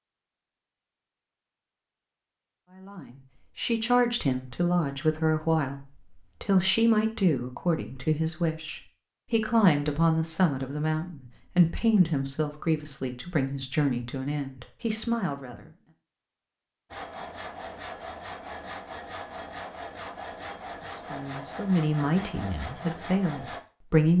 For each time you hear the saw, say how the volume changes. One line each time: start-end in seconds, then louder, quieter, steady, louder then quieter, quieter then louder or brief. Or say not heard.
16.9-23.6 steady.